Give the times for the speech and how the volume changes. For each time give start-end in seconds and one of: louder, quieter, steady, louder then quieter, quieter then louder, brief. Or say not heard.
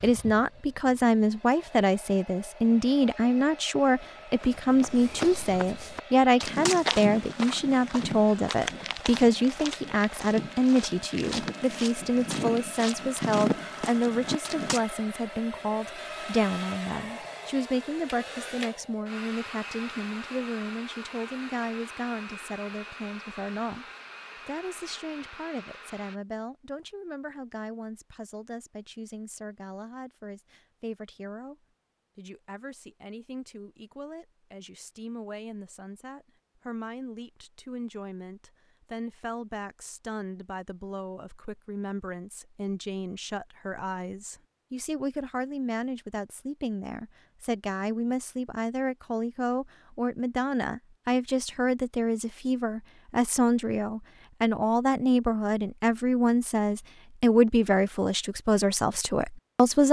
0.0-23.9 quieter
24.4-59.8 louder.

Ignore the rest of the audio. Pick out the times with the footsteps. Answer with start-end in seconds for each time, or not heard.
4.3-14.8.